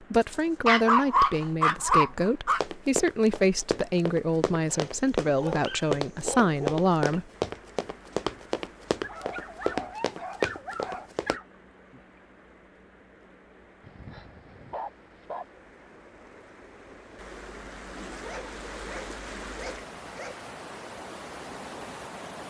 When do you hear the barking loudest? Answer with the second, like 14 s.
1 s.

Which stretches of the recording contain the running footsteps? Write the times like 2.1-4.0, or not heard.
2.5-11.4.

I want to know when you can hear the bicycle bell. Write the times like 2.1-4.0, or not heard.
not heard.